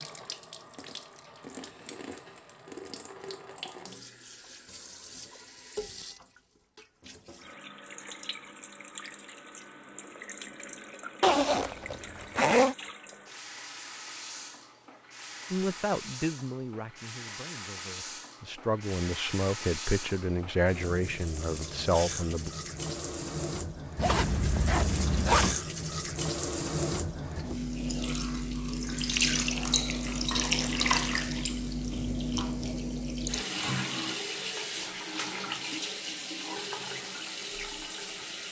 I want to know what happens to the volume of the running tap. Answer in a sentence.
The volume of the running tap goes up.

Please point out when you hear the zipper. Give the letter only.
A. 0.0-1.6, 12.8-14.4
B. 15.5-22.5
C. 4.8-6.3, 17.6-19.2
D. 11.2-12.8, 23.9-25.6
D.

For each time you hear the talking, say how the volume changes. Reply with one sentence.
The talking can be heard from 15.5 to 22.5 s, getting quieter then louder.